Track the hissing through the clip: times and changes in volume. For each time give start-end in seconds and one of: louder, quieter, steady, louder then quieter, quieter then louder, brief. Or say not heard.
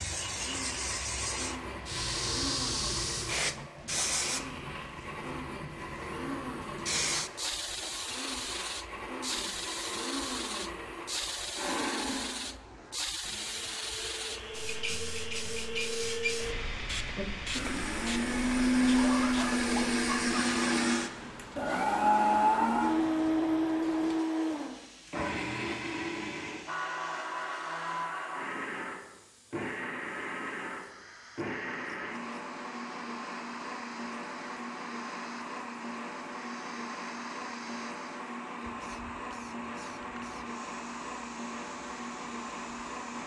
0.0-43.2 quieter.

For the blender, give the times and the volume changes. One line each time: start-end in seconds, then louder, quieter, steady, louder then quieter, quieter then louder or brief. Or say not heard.
0.0-43.2 louder then quieter.